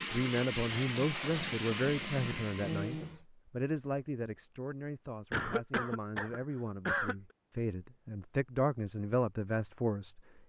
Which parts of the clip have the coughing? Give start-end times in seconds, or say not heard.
2.5-3.2, 5.3-7.2.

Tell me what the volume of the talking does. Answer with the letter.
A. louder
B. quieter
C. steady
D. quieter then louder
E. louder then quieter
D.